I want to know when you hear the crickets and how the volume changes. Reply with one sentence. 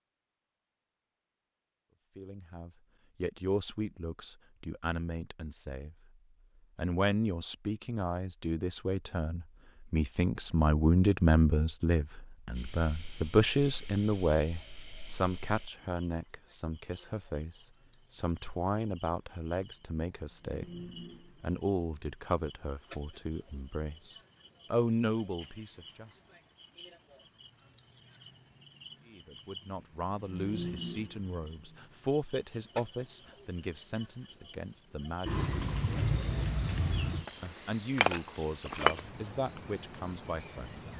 The crickets can be heard from 12.5 to 40.9 s, getting louder.